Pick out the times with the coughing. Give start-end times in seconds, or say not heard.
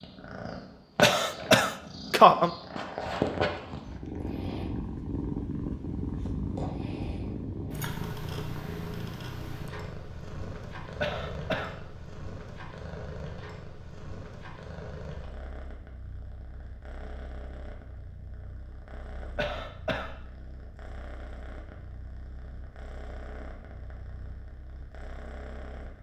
1.0-2.5, 11.0-11.8, 19.4-20.1.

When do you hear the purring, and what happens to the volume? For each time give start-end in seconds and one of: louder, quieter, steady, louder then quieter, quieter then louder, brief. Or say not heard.
0.0-25.9 quieter.